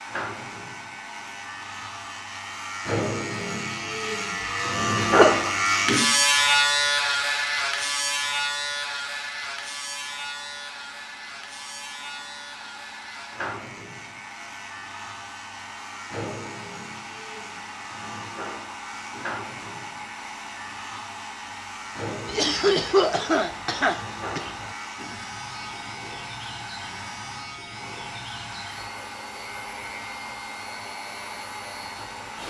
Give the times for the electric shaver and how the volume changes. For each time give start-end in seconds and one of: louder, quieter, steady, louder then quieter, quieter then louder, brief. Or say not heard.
0.0-32.4 quieter.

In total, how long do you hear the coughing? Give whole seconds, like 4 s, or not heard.
3 s.